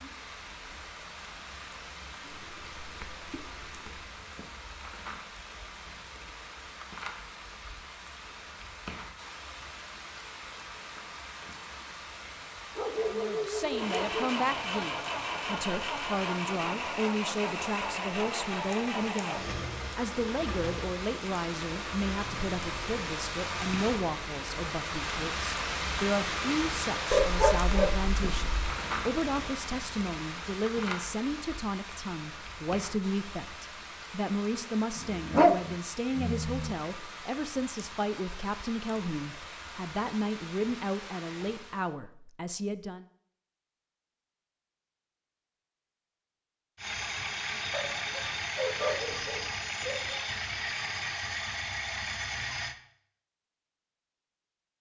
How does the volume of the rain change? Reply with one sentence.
The loudness of the rain goes up, then down.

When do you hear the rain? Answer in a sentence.
You can hear the rain from 0.0 to 42.0 s.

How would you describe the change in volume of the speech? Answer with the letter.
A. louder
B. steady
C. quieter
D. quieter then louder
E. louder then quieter
B.